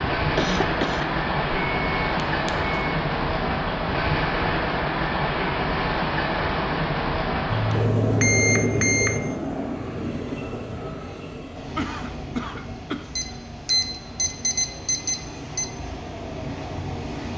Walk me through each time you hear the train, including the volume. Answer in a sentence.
The train can be heard from 0.0 to 17.3 s, getting quieter.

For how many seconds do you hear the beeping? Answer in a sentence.
You can hear the beeping for 6 seconds altogether.